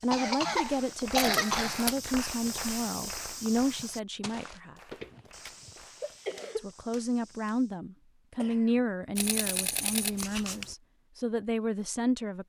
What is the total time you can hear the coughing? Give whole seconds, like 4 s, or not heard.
4 s.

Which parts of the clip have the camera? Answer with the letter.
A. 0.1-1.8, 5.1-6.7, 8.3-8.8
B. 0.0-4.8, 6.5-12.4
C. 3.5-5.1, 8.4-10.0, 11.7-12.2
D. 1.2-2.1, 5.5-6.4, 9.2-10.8
D.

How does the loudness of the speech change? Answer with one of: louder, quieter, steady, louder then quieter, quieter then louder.
steady.